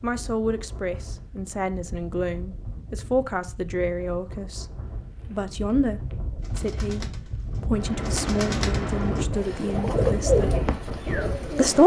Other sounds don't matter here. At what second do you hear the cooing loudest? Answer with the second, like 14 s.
10 s.